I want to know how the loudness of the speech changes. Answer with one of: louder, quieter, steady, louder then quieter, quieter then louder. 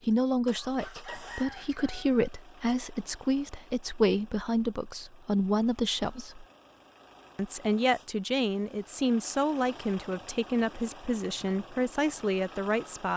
steady.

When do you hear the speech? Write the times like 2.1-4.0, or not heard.
0.1-6.5, 7.3-13.1.